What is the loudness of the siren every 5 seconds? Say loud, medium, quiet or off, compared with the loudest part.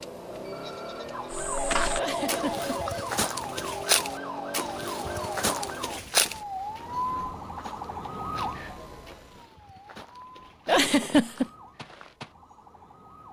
loud, loud, quiet.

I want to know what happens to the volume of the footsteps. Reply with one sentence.
The loudness of the footsteps goes down.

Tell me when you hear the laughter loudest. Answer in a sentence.
The volume of the laughter peaks at 11 seconds.